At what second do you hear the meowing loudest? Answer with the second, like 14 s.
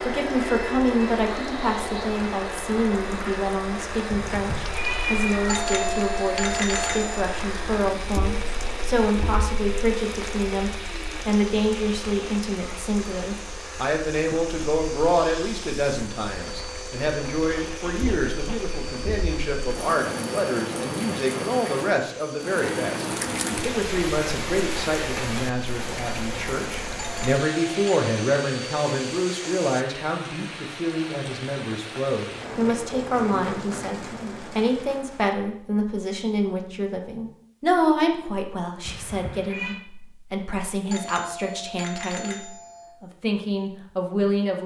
5 s.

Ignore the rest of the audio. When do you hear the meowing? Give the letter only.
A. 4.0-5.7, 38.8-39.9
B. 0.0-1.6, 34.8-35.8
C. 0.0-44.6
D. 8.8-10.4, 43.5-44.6
A.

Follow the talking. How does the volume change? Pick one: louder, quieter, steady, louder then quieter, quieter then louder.
steady.